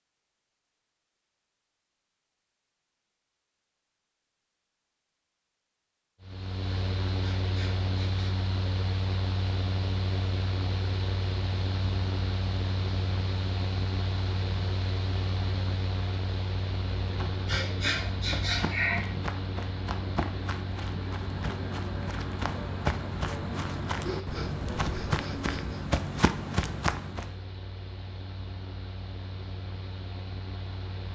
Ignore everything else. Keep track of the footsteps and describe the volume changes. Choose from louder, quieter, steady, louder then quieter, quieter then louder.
louder.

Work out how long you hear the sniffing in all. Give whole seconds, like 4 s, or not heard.
5 s.